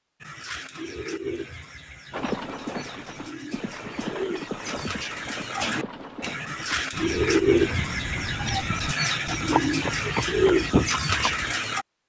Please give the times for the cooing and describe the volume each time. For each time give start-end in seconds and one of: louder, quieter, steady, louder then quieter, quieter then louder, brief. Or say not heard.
0.2-11.8 louder.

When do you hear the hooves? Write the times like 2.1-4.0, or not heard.
2.1-11.6.